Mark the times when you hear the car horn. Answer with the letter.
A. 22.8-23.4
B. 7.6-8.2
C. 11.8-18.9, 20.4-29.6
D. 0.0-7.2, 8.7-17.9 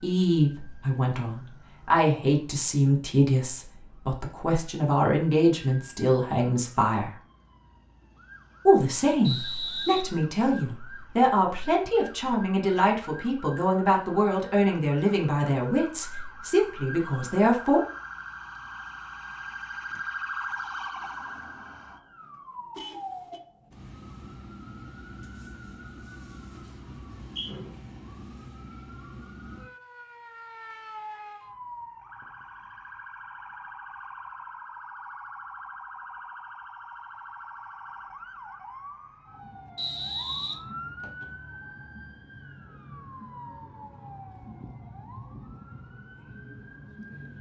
A.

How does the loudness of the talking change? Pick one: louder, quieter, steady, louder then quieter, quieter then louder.
steady.